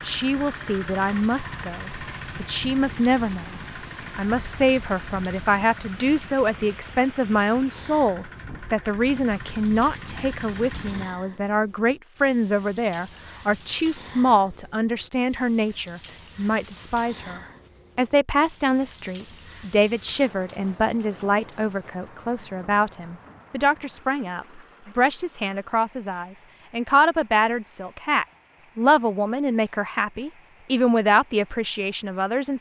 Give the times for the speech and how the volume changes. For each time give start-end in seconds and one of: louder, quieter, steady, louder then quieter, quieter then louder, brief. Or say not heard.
0.1-32.5 steady.